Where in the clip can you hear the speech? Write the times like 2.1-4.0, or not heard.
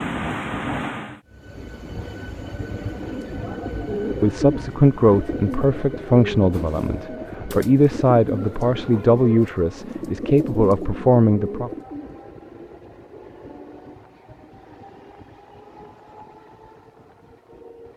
4.2-11.7.